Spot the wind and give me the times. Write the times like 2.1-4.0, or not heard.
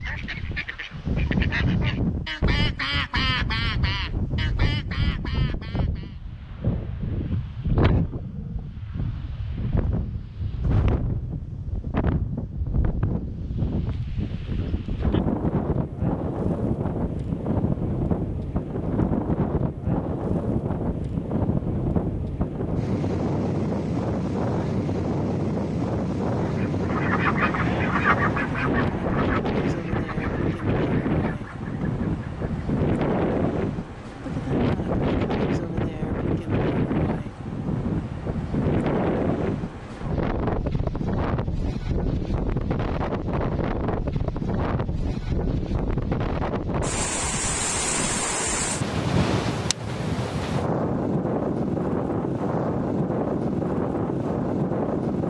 0.0-55.2.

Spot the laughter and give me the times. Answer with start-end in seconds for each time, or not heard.
not heard.